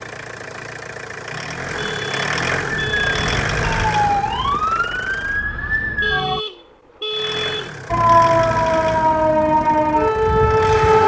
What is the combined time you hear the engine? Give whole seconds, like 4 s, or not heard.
9 s.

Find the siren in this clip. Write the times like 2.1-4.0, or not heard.
2.7-6.4, 7.9-11.0.